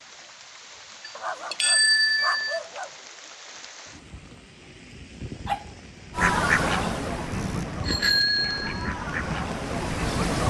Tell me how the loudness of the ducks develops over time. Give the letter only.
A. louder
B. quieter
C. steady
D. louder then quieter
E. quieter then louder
E.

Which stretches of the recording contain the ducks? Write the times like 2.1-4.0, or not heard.
6.1-10.4.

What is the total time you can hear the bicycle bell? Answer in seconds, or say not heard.
3 s.